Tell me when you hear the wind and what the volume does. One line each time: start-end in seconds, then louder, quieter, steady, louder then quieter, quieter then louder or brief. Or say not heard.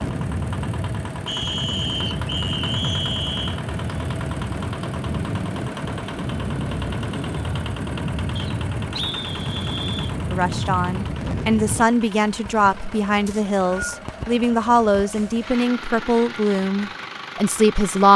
0.0-11.9 steady.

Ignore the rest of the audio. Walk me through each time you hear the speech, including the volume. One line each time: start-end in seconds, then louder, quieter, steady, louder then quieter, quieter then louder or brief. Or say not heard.
10.3-18.1 steady.